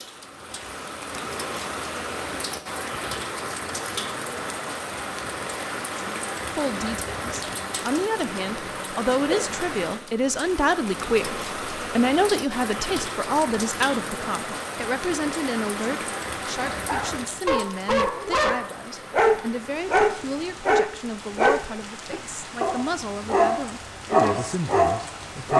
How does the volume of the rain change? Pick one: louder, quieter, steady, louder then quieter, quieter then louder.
quieter.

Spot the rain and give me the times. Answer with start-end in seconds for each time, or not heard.
0.0-25.5.